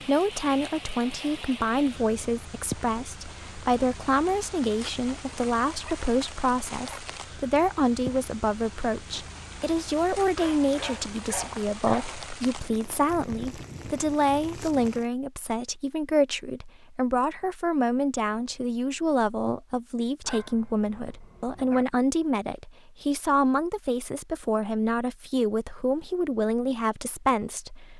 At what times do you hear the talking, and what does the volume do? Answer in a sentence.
You can hear the talking from 0.1 to 27.9 s, at a steady volume.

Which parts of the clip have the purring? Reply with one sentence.
You can't hear the purring here.